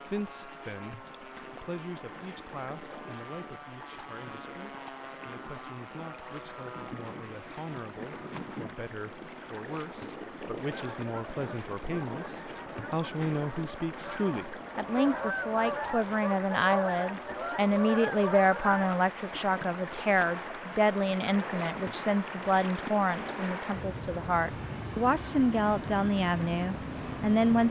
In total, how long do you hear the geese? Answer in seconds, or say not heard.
8 s.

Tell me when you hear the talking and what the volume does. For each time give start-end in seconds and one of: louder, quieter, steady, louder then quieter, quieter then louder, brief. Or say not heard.
0.0-27.6 louder.